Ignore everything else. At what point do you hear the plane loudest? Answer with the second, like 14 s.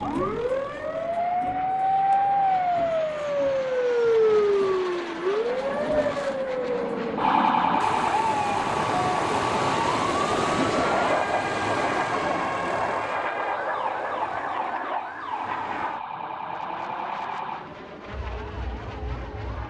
11 s.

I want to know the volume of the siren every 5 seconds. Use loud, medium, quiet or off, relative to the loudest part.
loud, loud, medium, quiet.